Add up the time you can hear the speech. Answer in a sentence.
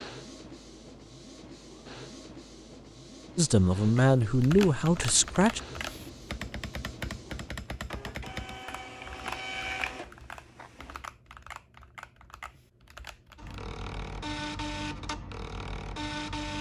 You can hear the speech for 2 seconds altogether.